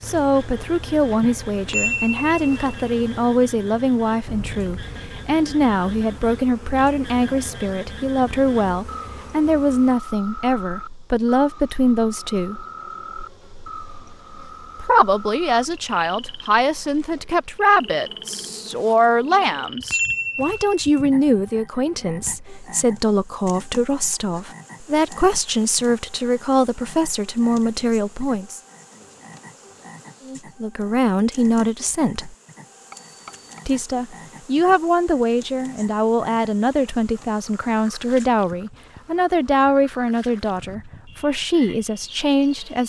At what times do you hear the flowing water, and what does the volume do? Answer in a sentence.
The flowing water can't be heard in this clip.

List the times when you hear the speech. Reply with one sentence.
The speech can be heard from 0.0 to 12.7 s, from 14.8 to 28.6 s, from 30.2 to 32.4 s and from 33.6 to 42.8 s.